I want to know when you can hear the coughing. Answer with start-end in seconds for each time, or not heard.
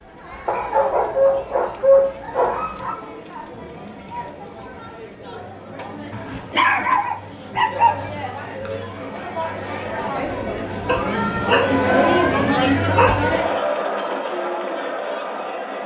not heard.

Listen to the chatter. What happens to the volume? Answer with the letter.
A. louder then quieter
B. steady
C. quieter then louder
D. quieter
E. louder
E.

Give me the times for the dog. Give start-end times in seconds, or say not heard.
0.5-3.0, 6.1-8.0, 10.8-13.2.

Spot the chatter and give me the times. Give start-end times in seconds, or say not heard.
0.0-15.8.